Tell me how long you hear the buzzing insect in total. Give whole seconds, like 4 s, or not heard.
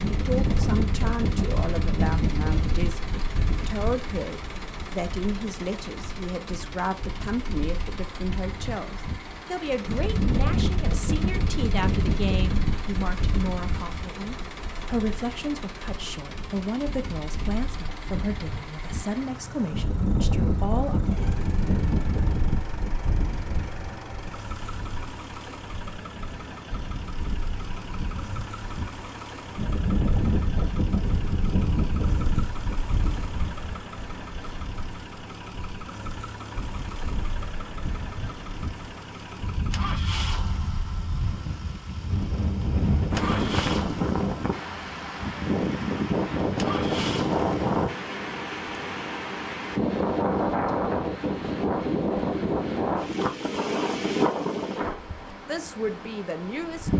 not heard.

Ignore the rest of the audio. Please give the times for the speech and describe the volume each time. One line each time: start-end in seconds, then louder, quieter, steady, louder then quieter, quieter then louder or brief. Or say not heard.
0.1-21.0 steady
55.3-56.9 brief.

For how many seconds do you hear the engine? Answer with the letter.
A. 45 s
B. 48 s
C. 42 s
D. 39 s
B.